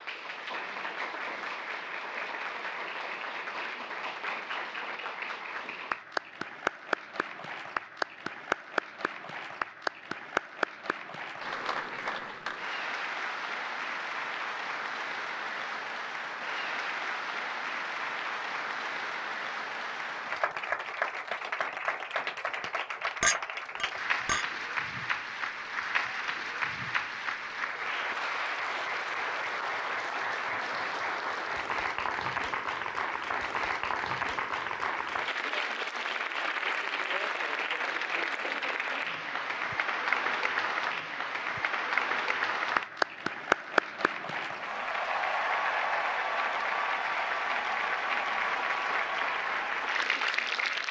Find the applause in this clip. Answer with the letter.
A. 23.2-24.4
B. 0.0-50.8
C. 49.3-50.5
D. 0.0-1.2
B.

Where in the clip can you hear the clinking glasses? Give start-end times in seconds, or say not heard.
23.2-24.4.